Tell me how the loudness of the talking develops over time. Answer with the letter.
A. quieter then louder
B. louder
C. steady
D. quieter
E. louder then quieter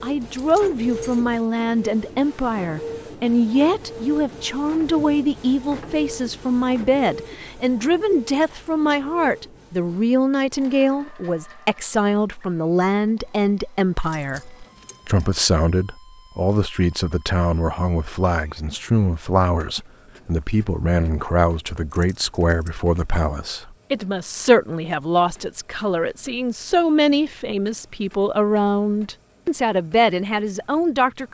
C.